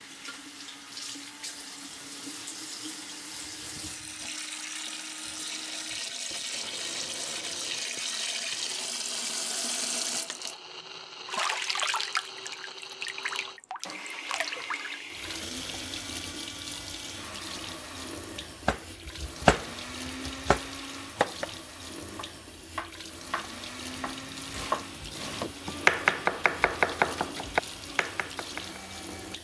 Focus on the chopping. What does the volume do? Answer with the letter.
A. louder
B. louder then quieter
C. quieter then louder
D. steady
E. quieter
C.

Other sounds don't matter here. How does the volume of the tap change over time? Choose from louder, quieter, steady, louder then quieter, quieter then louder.
louder then quieter.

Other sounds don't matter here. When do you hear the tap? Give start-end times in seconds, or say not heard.
0.0-29.3.